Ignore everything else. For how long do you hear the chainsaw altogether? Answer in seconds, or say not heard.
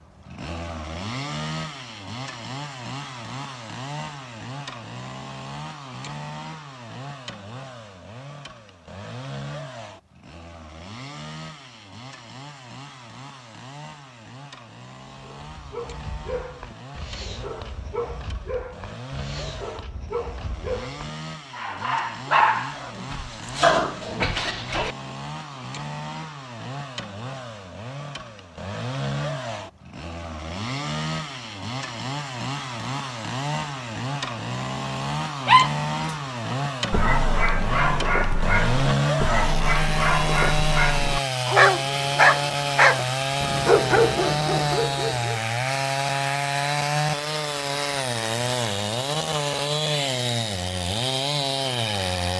52 s.